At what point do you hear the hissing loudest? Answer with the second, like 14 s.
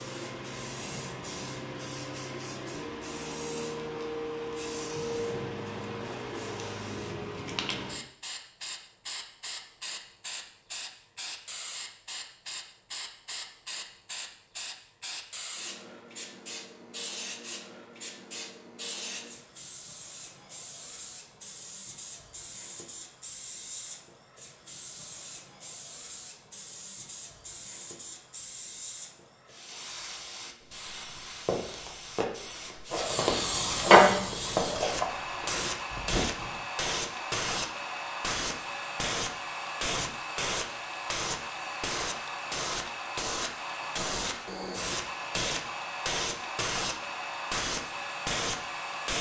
34 s.